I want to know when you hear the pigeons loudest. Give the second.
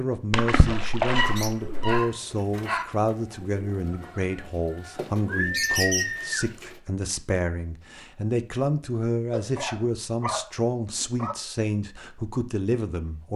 6 s.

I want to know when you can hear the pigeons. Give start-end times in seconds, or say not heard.
1.2-6.8.